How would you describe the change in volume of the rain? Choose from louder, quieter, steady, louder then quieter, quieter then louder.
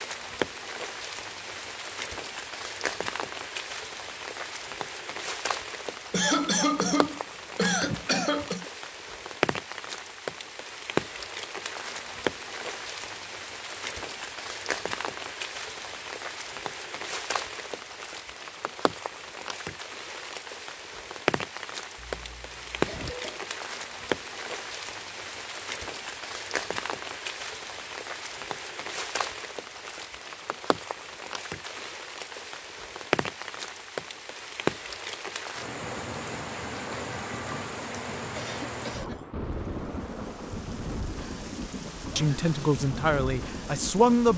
steady.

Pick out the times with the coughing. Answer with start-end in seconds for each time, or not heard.
6.1-8.7, 21.9-23.4, 38.4-39.2.